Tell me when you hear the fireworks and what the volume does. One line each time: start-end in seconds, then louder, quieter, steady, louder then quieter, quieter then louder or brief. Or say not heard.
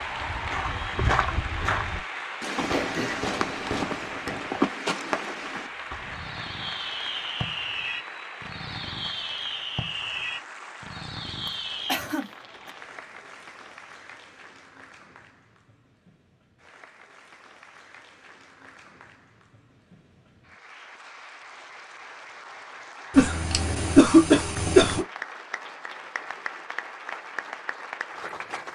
2.5-12.0 steady.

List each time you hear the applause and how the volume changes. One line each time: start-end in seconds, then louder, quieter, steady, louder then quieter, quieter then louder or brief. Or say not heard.
0.0-28.6 quieter then louder.